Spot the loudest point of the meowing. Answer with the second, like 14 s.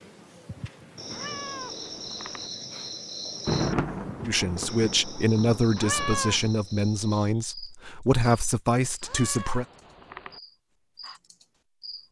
6 s.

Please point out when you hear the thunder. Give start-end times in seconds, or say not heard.
3.5-6.5.